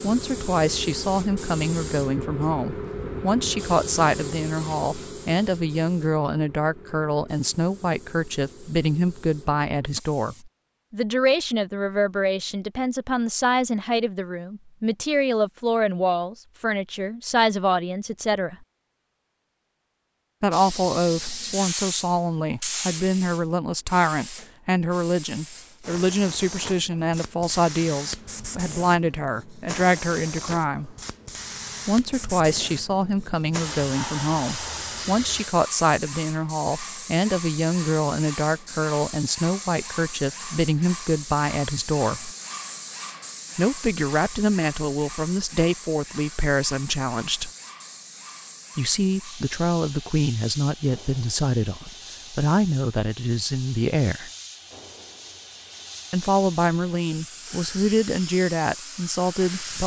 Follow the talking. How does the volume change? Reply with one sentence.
The volume of the talking stays about the same.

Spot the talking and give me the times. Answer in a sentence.
The talking can be heard from 0.0 to 18.6 s, from 20.4 to 30.9 s, from 31.9 to 42.3 s, from 43.5 to 47.5 s, from 48.8 to 54.3 s and from 56.1 to 59.8 s.